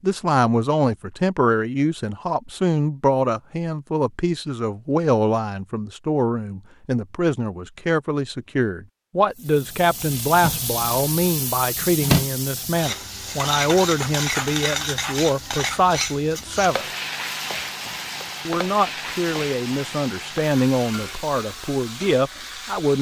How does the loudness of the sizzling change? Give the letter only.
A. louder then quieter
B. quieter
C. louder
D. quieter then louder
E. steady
B.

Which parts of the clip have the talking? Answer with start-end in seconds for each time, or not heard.
0.0-16.9, 18.4-22.9.